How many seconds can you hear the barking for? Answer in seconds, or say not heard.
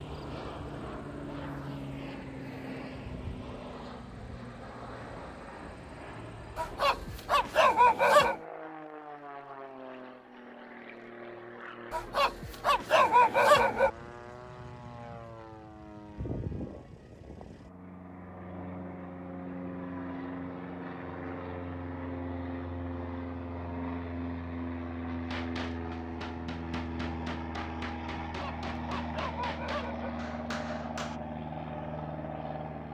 6 s.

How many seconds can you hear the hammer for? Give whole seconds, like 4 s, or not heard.
6 s.